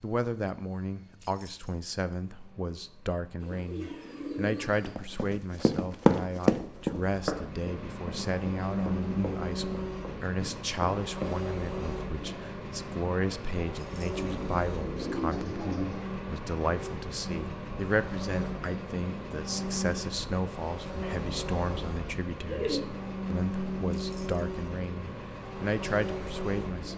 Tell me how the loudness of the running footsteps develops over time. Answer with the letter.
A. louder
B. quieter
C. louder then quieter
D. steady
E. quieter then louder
B.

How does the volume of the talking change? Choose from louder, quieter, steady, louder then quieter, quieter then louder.
steady.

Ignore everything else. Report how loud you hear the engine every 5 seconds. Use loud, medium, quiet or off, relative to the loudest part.
quiet, loud, loud, loud, loud, loud.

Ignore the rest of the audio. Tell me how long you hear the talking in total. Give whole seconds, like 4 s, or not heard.
27 s.